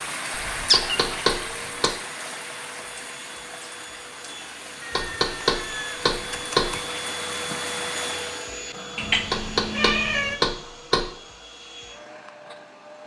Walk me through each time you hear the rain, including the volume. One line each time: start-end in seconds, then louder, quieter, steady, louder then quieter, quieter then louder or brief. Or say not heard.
0.0-8.6 quieter then louder.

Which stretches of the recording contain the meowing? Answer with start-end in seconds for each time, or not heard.
0.3-1.9, 4.8-6.8, 8.9-10.4.